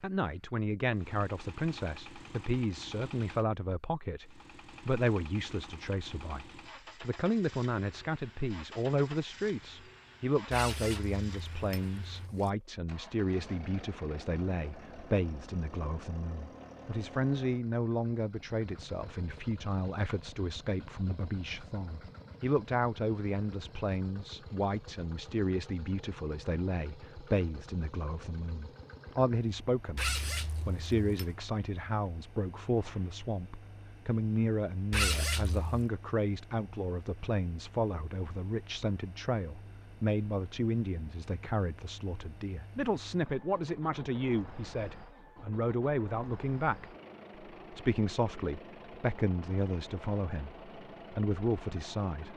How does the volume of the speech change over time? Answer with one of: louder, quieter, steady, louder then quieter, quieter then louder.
steady.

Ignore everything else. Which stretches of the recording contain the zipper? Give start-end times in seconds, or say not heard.
10.5-12.5, 29.9-31.4, 34.9-35.9.